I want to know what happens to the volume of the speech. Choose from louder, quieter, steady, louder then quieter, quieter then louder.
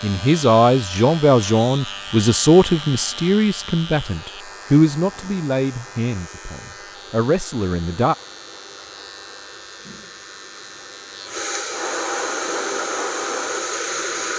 quieter.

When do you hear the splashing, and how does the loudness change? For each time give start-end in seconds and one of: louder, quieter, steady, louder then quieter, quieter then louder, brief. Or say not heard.
not heard.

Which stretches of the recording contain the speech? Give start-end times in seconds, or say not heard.
0.0-8.2.